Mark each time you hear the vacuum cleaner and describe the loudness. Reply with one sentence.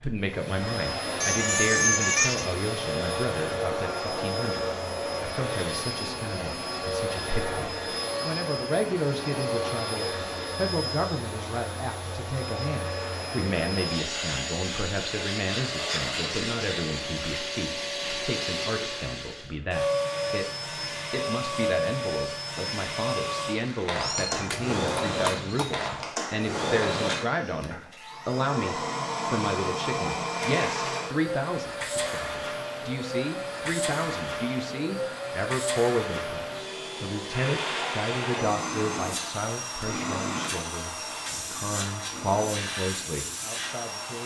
The vacuum cleaner can be heard from 0.0 to 44.2 s, at a steady volume.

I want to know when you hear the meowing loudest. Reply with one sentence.
The loudest moment of the meowing is at 2 seconds.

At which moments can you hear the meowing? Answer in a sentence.
You can hear the meowing from 1.2 to 2.5 s and from 23.9 to 26.1 s.